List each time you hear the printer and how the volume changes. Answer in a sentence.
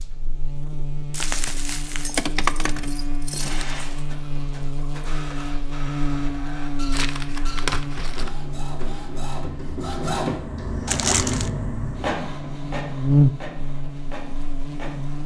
The printer can be heard from 3.2 to 15.2 s, getting louder then quieter.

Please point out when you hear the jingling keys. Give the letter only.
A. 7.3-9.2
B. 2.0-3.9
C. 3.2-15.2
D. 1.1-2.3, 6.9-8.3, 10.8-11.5
B.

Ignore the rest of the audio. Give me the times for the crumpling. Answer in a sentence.
The crumpling can be heard from 1.1 to 2.3 s, from 6.9 to 8.3 s and from 10.8 to 11.5 s.